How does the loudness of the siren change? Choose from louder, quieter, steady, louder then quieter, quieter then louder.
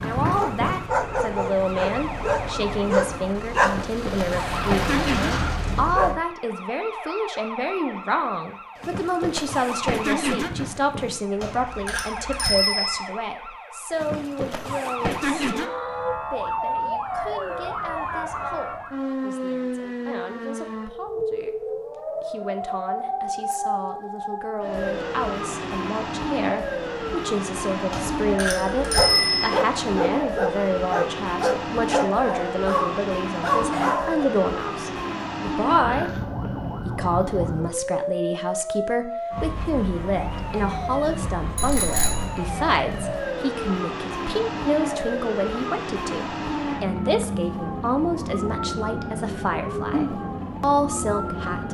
steady.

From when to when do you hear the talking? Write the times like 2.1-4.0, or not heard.
0.0-36.1, 36.9-51.7.